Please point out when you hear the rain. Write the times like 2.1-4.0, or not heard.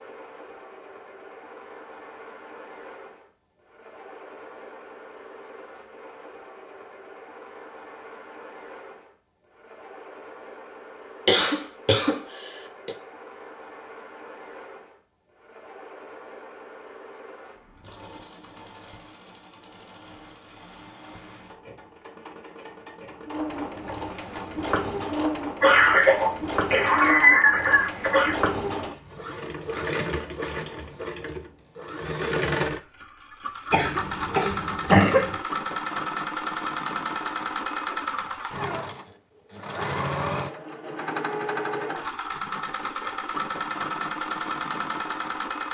not heard.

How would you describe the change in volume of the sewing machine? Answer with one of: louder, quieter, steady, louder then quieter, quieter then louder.
louder.